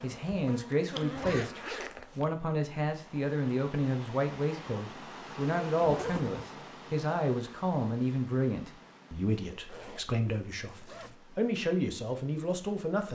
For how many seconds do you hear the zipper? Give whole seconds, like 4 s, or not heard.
4 s.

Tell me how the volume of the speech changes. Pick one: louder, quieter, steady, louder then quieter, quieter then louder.
steady.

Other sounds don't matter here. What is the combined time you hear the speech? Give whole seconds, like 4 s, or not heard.
13 s.